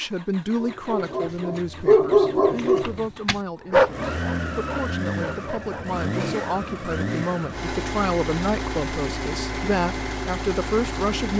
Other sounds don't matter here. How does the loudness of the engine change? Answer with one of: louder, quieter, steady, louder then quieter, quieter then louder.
louder.